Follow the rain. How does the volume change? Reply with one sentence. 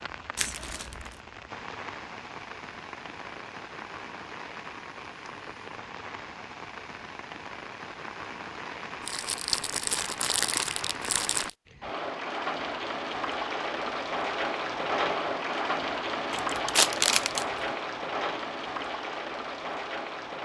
The loudness of the rain goes up.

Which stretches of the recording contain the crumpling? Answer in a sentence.
The crumpling can be heard from 0.3 to 1.1 s, from 9.1 to 11.5 s and from 16.3 to 17.4 s.